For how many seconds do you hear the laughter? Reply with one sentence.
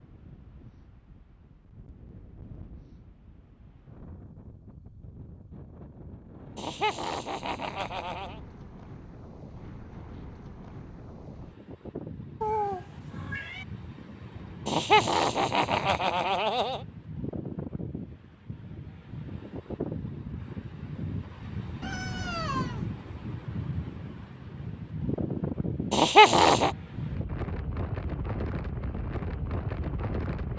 The laughter can be heard for 5 seconds in total.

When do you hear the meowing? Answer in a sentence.
You can hear the meowing from 12.4 to 13.7 s and from 21.8 to 22.9 s.